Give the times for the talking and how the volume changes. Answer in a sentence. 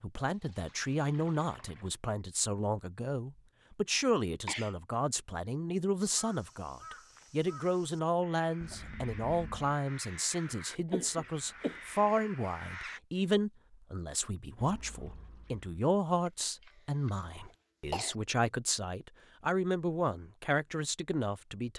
The talking can be heard from 0.0 to 21.7 s, at a steady volume.